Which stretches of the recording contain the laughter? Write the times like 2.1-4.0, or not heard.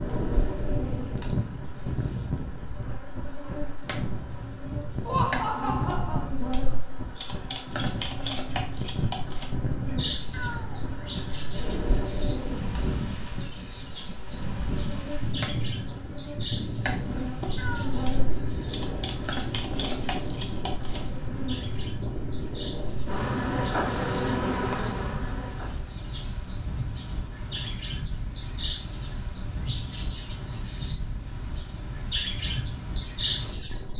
5.0-6.3.